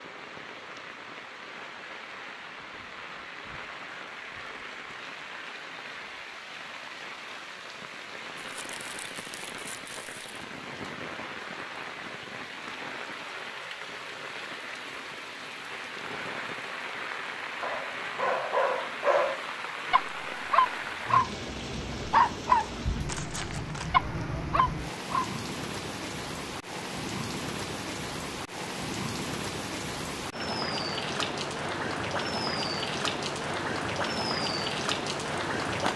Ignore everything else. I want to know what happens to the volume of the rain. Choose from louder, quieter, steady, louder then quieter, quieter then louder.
louder.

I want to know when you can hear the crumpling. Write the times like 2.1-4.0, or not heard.
8.4-10.3, 23.1-23.9.